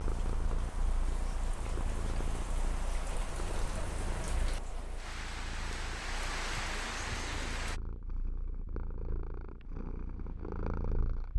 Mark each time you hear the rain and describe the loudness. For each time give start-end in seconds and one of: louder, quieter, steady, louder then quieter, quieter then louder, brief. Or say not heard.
0.0-7.8 louder.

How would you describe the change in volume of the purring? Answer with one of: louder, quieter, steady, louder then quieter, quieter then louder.
quieter then louder.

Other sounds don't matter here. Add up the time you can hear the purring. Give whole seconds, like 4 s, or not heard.
11 s.